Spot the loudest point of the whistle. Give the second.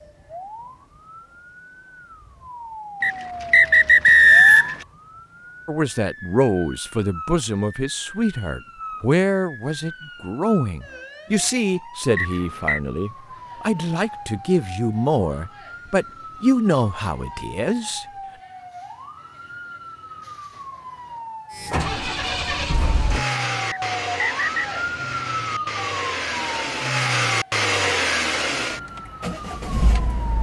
4 s.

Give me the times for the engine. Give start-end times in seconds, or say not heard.
21.5-30.3.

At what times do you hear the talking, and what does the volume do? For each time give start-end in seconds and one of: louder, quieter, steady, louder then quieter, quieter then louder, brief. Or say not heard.
5.7-18.1 steady.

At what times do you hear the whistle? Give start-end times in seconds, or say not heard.
3.0-4.8, 12.2-12.8, 23.6-24.6.